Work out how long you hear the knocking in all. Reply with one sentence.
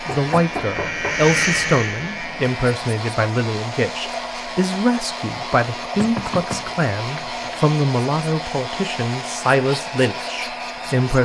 You can hear the knocking for 3 seconds altogether.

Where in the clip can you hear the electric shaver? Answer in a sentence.
The electric shaver can be heard from 0.0 to 2.6 s.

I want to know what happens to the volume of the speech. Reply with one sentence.
The loudness of the speech stays about the same.